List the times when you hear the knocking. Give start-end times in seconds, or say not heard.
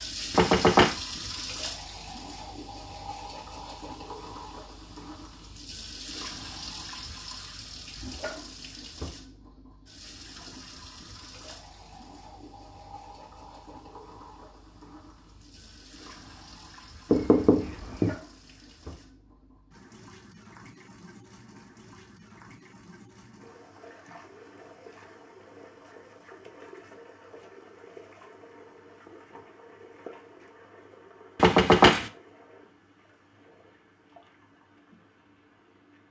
0.3-0.9, 17.1-18.1, 31.4-32.1.